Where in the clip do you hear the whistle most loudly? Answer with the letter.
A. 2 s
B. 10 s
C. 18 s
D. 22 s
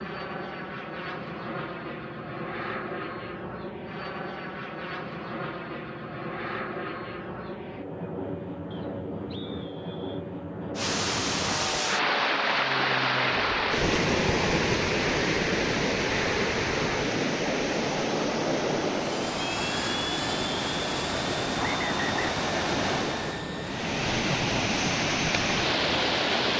D.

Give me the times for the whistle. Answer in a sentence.
You can hear the whistle from 8.7 to 10.2 s and from 21.6 to 22.3 s.